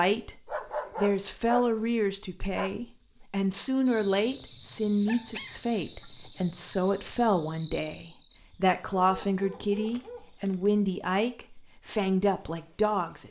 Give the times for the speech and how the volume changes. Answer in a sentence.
The speech can be heard from 0.0 to 13.2 s, at a steady volume.